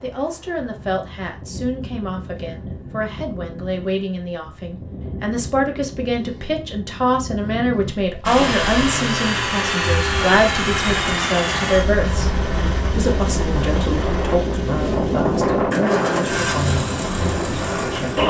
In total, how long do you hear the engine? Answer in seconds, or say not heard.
10 s.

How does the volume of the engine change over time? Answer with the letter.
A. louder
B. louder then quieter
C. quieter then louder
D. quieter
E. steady
C.